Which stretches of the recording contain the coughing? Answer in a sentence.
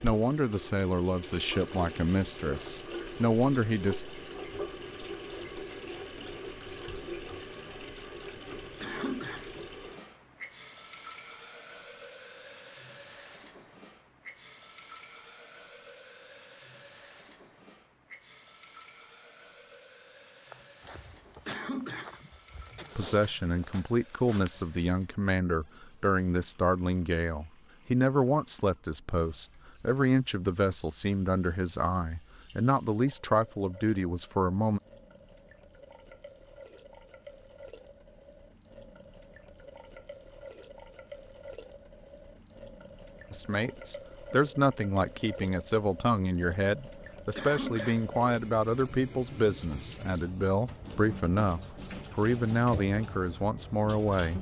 The coughing can be heard from 8.8 to 9.7 s, from 21.4 to 22.3 s and from 47.4 to 48.2 s.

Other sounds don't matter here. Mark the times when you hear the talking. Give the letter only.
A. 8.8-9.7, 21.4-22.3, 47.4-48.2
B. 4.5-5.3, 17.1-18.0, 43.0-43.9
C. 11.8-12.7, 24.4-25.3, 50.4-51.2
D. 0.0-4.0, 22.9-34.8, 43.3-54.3
D.